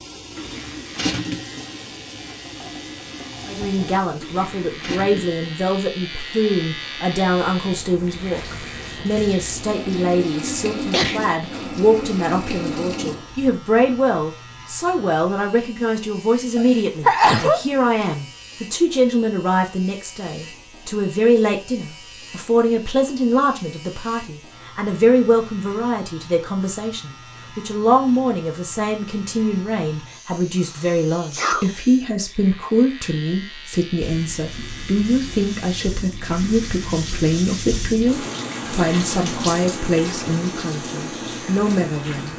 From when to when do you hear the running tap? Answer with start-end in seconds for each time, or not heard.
0.0-13.6, 34.0-42.3.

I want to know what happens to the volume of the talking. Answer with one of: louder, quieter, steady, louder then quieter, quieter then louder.
steady.